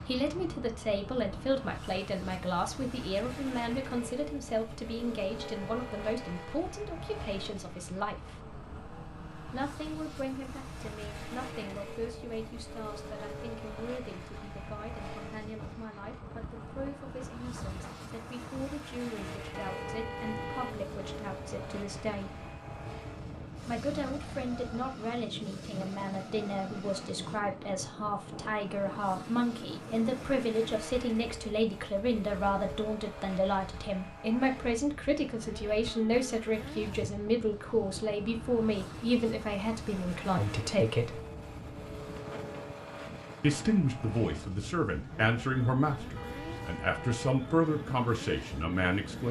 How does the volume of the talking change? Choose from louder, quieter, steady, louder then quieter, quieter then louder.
quieter then louder.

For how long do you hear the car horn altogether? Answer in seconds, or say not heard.
4 s.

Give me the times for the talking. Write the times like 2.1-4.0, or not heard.
0.1-8.6, 9.4-22.4, 23.6-41.2, 43.4-49.2.